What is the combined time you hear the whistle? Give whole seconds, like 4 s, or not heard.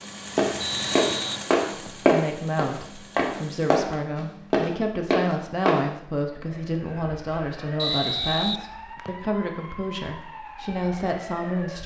3 s.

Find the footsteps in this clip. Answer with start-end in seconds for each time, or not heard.
0.0-5.8.